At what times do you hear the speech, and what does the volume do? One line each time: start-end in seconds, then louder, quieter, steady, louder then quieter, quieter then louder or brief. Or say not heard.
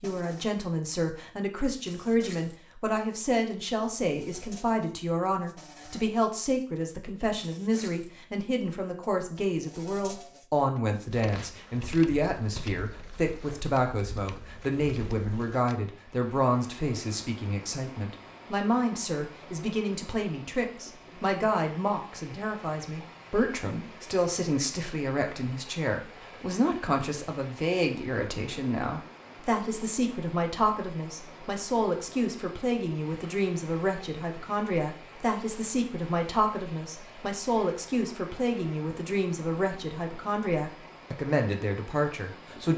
0.0-42.7 steady.